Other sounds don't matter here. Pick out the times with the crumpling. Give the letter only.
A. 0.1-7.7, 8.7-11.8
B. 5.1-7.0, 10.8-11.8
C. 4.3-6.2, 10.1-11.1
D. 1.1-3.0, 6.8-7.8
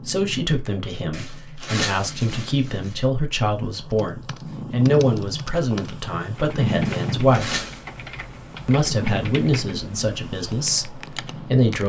D.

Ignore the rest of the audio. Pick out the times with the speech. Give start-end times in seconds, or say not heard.
0.1-7.7, 8.7-11.8.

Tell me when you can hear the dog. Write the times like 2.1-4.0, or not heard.
not heard.